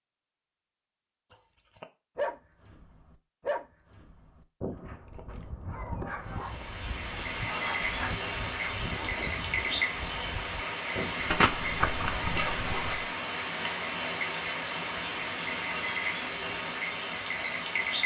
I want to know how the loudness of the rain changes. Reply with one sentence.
The volume of the rain stays about the same.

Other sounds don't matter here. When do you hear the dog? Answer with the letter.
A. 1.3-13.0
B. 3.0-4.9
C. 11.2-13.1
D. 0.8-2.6
A.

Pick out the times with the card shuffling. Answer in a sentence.
You can hear the card shuffling from 11.2 to 13.1 s.